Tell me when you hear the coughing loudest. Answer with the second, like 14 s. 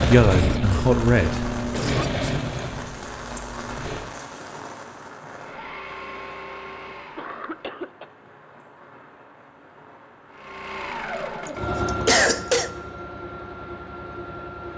12 s.